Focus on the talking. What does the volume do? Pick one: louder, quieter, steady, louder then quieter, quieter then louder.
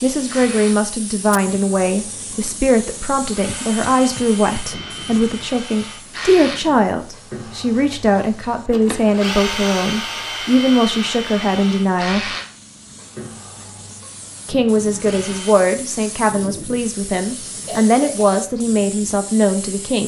steady.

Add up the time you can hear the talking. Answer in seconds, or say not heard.
18 s.